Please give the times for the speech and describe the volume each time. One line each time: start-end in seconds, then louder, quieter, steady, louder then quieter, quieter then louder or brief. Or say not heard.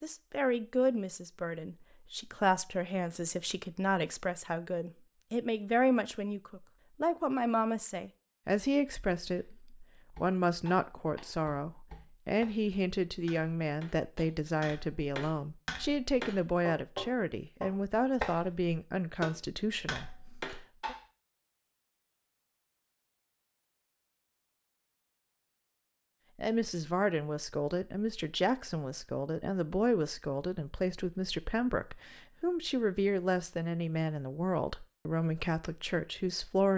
0.0-20.9 steady
26.4-36.7 steady.